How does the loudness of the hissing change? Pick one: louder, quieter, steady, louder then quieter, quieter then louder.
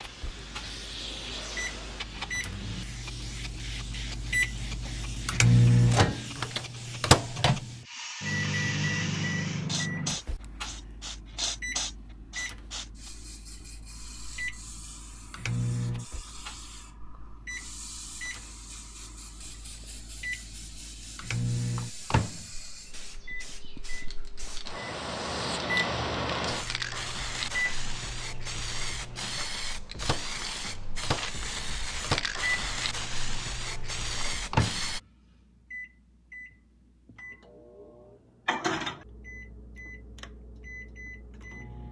quieter then louder.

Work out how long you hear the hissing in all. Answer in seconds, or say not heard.
35 s.